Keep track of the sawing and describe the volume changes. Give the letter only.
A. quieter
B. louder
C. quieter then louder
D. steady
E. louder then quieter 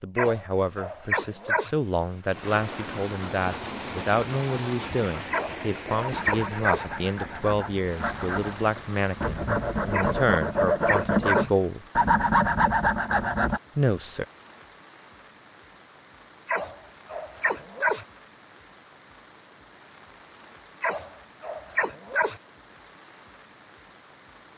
B.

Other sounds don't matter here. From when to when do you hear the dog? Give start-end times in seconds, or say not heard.
0.1-1.7, 5.3-6.8, 9.9-11.5, 16.4-18.1, 20.8-22.4.